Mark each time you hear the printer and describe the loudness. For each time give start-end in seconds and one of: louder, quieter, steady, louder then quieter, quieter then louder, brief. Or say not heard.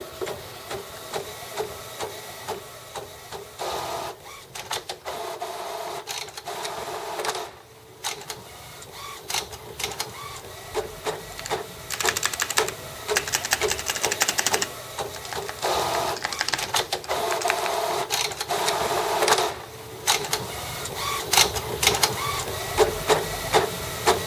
0.0-24.2 louder.